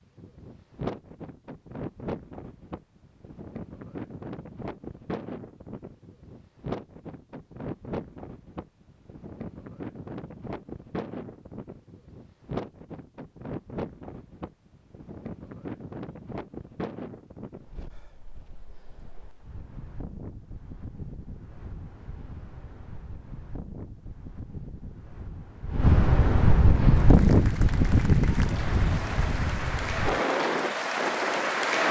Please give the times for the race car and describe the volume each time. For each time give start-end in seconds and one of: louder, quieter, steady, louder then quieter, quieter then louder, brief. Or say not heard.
not heard.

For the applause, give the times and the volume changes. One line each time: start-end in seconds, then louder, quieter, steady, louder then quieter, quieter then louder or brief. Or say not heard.
26.6-31.8 louder.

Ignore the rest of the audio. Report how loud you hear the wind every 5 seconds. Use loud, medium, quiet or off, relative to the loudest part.
quiet, quiet, quiet, quiet, quiet, loud, medium.